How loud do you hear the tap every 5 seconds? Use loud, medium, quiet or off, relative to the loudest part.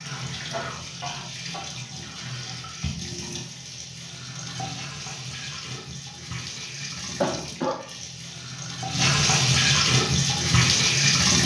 quiet, medium, loud.